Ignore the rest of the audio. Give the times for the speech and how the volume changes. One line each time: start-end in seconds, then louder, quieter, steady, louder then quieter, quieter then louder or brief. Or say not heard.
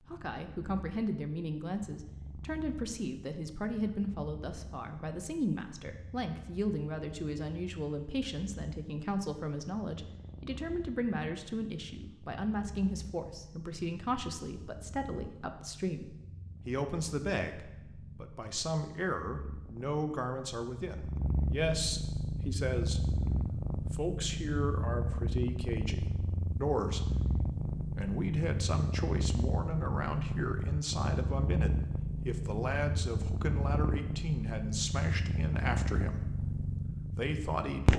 0.1-27.1 steady
27.9-36.4 steady
37.1-37.9 brief.